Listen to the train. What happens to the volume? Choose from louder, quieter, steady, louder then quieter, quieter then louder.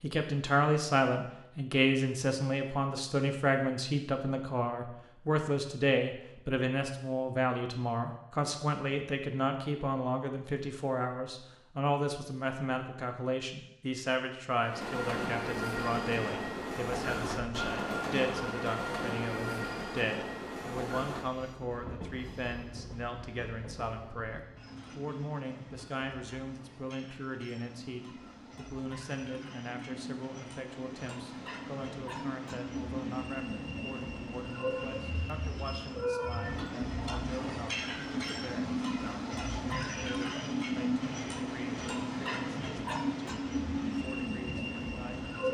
quieter then louder.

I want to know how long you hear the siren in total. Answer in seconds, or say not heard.
not heard.